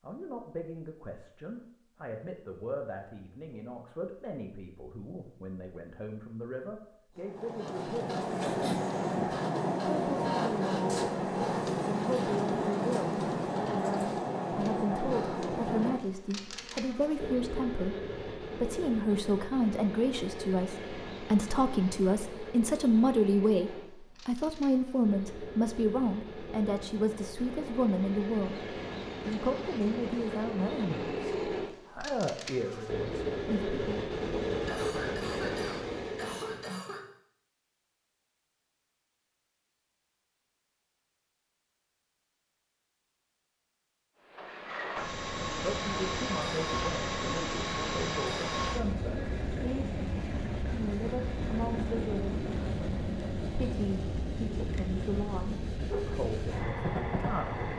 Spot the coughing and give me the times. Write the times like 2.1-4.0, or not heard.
34.6-37.0.